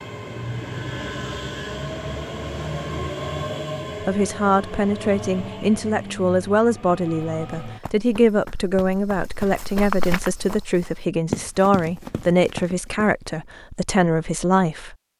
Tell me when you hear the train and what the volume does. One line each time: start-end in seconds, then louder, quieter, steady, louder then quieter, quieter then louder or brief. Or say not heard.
0.0-7.8 quieter.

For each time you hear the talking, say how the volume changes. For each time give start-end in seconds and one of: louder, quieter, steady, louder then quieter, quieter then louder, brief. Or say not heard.
4.0-14.9 steady.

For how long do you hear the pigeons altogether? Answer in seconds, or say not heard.
not heard.